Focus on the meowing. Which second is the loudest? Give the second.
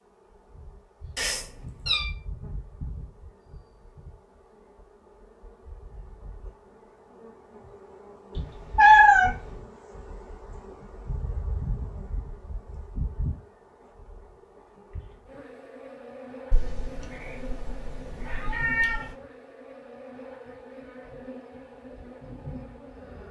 9 s.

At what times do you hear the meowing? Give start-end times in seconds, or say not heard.
1.1-2.1, 8.3-9.3, 16.5-19.1.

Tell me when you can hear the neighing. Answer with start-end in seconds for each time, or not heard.
not heard.